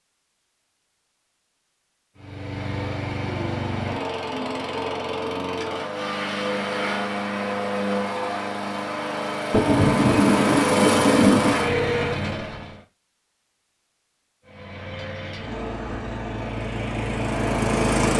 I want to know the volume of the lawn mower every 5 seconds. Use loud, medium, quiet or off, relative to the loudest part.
medium, loud, loud, loud.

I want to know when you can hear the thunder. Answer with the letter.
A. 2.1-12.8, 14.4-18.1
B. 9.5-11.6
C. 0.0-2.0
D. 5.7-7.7
B.